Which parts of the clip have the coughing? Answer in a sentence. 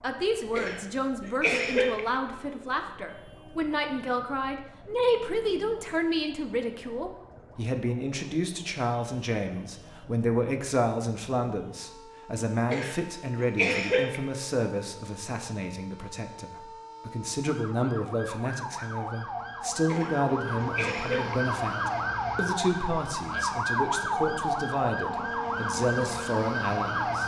You can hear the coughing from 0.4 to 2.0 s, from 12.6 to 14.2 s and from 19.8 to 21.4 s.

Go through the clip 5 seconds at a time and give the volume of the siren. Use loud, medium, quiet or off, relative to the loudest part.
quiet, quiet, quiet, medium, loud, loud.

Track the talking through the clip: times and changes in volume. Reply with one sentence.
You can hear the talking from 0.0 to 27.2 s, at a steady volume.